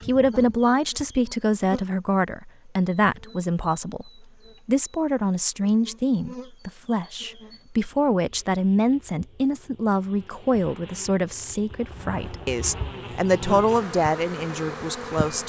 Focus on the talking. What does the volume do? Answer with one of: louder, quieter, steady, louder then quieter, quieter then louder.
steady.